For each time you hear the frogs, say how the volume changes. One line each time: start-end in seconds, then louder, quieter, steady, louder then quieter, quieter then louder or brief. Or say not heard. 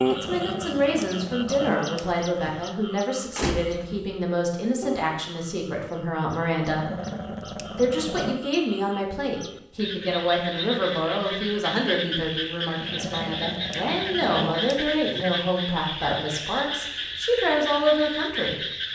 0.0-18.9 louder.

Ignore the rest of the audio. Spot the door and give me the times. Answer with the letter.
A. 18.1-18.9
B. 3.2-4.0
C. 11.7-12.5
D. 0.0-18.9
B.